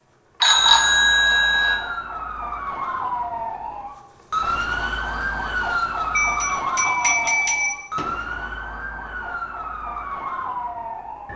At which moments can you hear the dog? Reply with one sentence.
You can't hear the dog here.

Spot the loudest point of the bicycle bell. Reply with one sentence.
The loudest moment of the bicycle bell is at 1 second.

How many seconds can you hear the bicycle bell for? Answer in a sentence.
The bicycle bell can be heard for 3 seconds in total.